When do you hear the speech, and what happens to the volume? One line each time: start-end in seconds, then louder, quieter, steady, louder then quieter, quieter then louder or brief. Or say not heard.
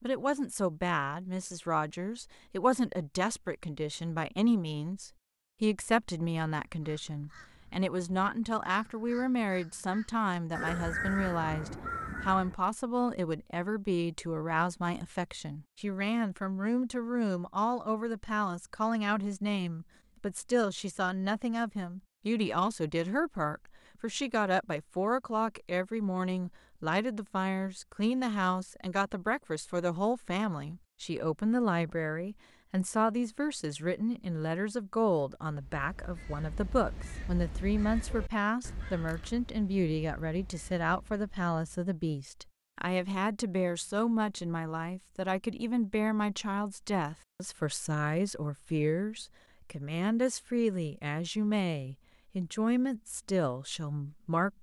0.0-54.5 steady.